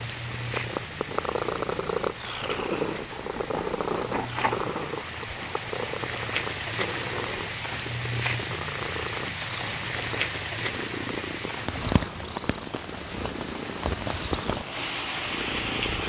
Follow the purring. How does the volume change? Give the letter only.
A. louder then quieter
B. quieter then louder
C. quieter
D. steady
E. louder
C.